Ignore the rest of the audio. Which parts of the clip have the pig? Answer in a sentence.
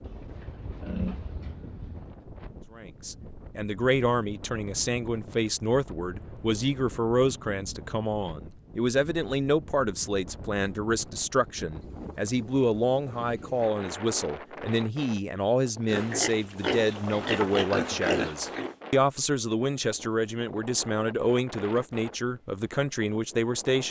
You can hear the pig from 0.0 to 2.1 s and from 15.8 to 18.8 s.